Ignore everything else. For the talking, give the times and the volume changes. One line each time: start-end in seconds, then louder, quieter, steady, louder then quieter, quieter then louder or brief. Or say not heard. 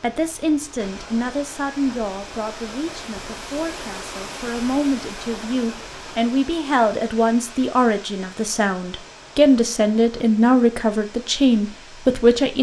0.0-12.5 louder.